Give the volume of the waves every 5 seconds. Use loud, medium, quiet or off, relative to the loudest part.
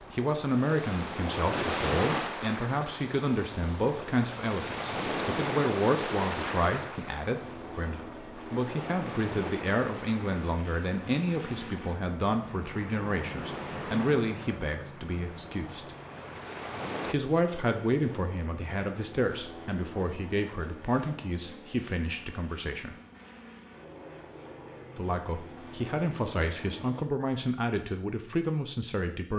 loud, loud, medium, medium, off, off.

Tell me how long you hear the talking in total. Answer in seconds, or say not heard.
26 s.